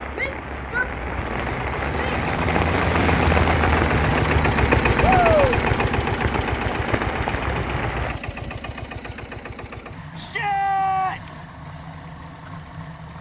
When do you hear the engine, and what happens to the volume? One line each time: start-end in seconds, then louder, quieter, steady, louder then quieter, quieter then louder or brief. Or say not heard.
0.0-13.1 louder then quieter.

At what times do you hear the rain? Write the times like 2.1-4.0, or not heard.
0.0-8.2.